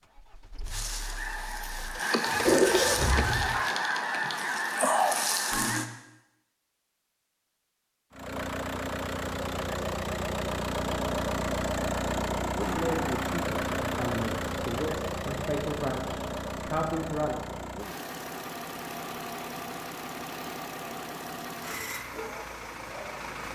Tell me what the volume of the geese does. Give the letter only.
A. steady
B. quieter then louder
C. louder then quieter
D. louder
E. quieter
D.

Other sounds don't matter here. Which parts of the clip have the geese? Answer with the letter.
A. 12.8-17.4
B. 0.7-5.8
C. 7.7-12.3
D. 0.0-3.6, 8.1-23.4
B.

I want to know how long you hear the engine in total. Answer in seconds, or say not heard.
19 s.